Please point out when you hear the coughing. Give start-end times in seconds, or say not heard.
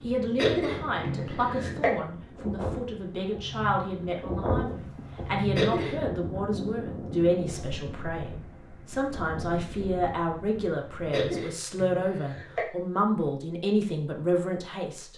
0.3-1.9, 5.5-6.0, 11.1-12.7.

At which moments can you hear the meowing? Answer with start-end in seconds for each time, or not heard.
not heard.